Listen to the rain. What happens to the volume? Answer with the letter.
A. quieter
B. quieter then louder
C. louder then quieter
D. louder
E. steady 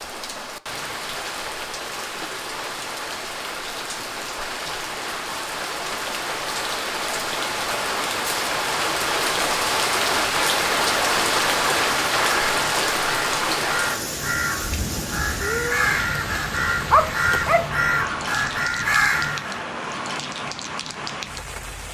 C.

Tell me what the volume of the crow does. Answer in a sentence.
The loudness of the crow goes up.